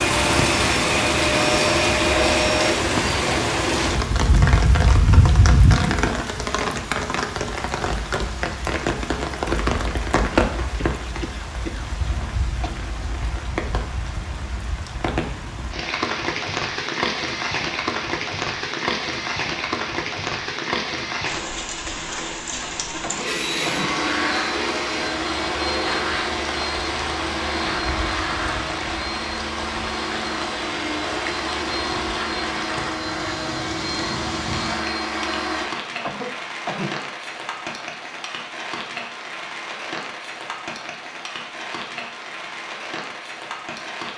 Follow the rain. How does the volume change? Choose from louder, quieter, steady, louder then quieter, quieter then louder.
quieter.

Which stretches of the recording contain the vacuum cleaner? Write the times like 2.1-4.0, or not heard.
0.0-2.8, 23.2-35.6.